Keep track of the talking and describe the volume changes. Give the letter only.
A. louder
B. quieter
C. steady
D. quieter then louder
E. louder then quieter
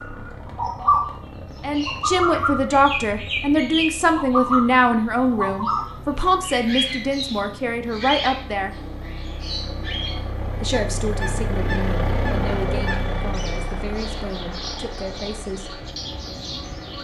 B.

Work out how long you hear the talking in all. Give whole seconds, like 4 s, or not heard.
12 s.